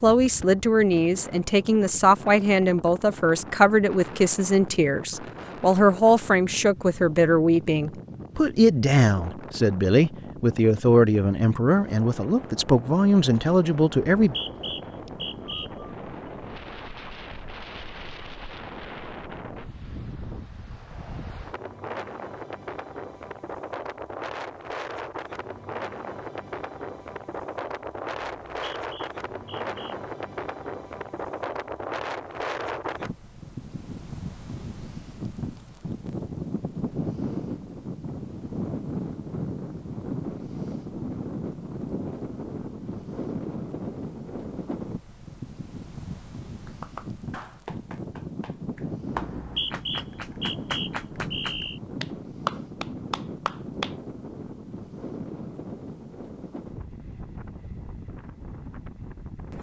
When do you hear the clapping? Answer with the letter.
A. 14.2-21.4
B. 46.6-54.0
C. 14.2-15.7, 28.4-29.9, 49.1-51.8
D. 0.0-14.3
B.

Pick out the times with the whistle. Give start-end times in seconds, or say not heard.
14.2-15.7, 28.4-29.9, 49.1-51.8.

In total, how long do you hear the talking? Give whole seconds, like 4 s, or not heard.
14 s.